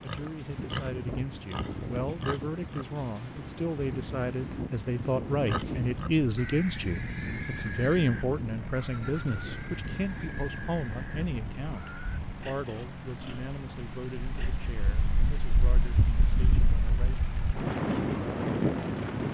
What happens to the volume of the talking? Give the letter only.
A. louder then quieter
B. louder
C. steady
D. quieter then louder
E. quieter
A.